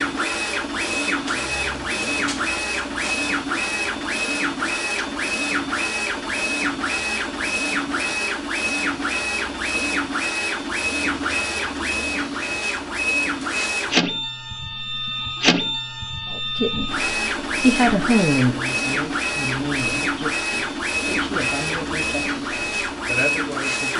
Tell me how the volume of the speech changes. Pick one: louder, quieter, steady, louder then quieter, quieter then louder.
quieter.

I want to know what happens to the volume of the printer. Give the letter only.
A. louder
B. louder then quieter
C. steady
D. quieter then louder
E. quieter
C.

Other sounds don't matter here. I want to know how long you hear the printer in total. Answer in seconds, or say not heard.
24 s.